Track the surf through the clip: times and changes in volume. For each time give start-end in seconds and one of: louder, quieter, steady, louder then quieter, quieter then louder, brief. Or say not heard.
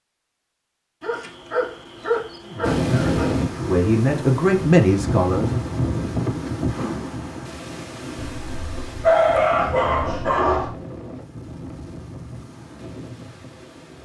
2.6-13.9 quieter.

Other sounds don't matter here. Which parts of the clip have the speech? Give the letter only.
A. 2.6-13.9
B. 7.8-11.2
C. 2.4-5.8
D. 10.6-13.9
C.